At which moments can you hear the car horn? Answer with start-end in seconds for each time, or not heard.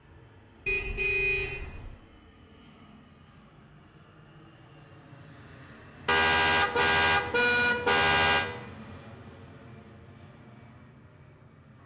0.7-1.9, 6.0-8.4.